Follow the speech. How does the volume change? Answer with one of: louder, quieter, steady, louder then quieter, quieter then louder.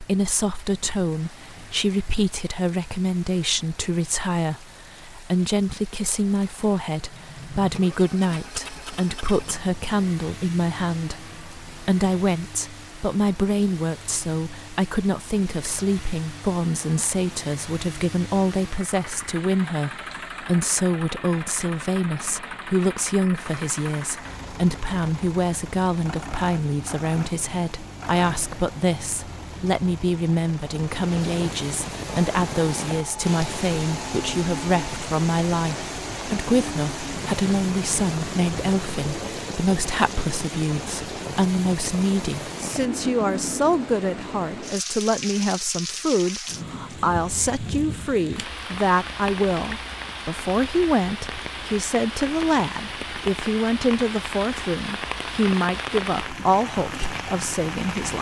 steady.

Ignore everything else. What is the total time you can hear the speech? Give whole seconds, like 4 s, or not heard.
58 s.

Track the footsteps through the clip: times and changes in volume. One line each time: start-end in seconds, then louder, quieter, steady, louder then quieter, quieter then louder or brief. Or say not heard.
not heard.